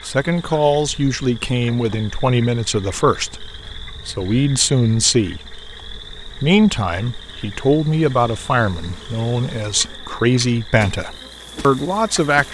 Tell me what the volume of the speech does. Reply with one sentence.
The volume of the speech stays about the same.